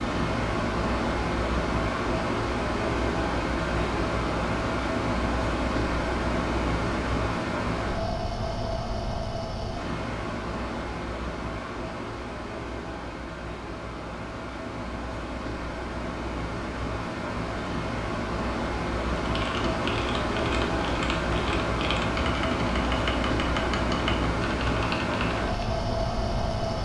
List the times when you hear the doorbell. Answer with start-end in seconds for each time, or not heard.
not heard.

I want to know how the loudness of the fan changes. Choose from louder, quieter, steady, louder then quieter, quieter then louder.
quieter then louder.